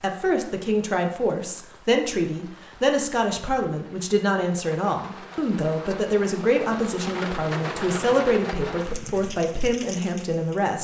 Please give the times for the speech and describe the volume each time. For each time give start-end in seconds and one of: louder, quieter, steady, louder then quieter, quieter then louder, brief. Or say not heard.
0.0-10.7 steady.